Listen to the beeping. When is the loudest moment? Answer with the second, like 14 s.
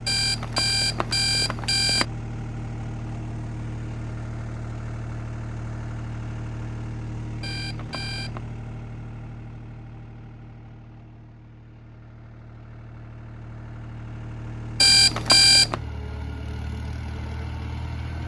15 s.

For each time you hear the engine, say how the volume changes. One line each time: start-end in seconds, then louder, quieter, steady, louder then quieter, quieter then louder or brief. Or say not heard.
0.0-18.2 quieter then louder.